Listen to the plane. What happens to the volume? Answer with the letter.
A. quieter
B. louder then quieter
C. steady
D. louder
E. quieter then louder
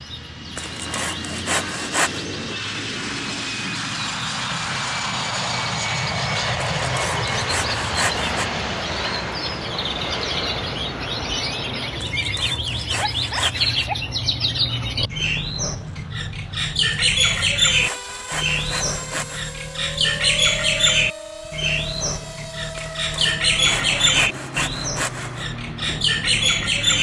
A.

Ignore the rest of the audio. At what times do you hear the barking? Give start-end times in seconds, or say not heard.
12.9-14.5.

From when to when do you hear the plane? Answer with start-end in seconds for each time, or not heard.
0.0-26.9.